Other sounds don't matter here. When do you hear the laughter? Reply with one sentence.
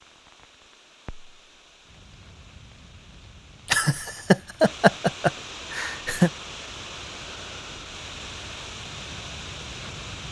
You can hear the laughter from 3.6 to 6.3 s.